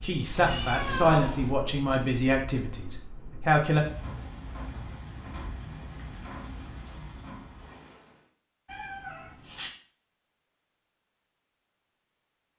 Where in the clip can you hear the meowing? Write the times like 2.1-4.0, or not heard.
0.3-1.6, 8.7-9.7.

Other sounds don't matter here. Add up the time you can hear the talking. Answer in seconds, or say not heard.
4 s.